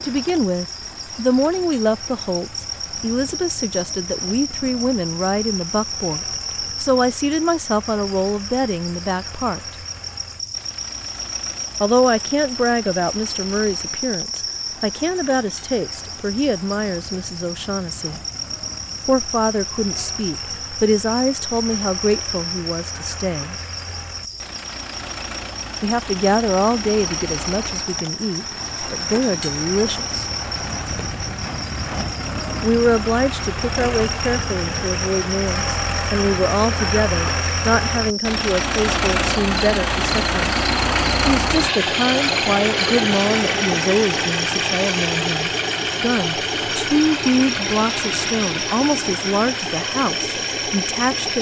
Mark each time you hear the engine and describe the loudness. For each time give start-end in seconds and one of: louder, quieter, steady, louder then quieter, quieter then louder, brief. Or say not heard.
0.0-51.3 louder.